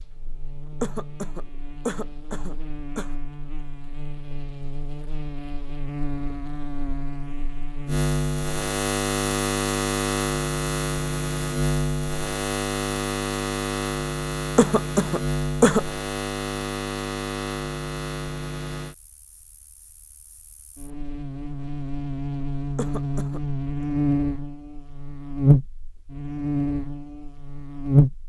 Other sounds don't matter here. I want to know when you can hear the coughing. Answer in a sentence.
The coughing can be heard from 0.8 to 3.1 s, from 14.6 to 15.8 s and from 22.8 to 23.4 s.